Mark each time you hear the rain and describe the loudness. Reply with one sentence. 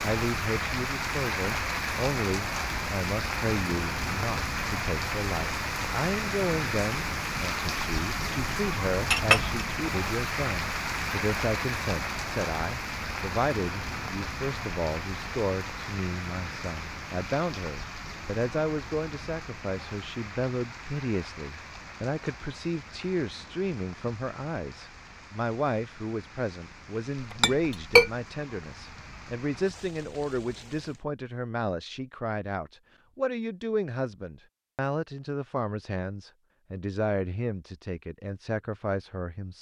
You can hear the rain from 0.0 to 31.1 s, getting quieter.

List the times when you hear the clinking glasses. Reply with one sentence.
You can hear the clinking glasses from 9.1 to 9.6 s and from 27.4 to 28.1 s.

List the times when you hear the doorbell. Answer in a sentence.
You can't hear the doorbell here.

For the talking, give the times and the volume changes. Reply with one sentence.
You can hear the talking from 0.0 to 39.5 s, at a steady volume.